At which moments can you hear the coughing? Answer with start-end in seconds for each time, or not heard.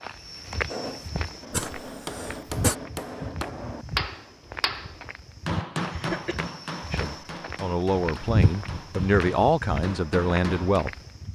1.5-2.8, 5.9-6.4.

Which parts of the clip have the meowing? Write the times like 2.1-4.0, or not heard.
not heard.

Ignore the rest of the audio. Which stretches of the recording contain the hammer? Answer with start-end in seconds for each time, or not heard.
0.7-10.8.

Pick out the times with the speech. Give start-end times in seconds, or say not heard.
6.9-10.9.